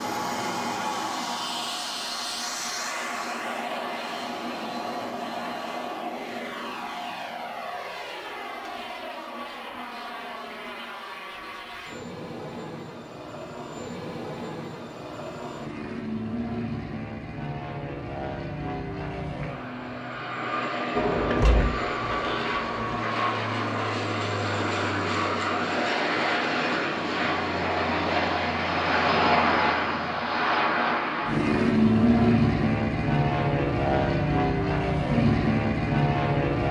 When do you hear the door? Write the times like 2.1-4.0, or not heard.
20.9-22.9.